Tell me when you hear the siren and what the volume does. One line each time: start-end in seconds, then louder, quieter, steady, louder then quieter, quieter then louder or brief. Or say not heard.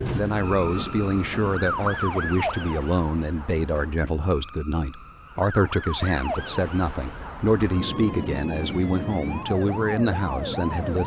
0.1-11.0 quieter then louder.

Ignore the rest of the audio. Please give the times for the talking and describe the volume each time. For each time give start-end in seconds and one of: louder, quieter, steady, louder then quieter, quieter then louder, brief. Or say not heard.
0.1-11.0 steady.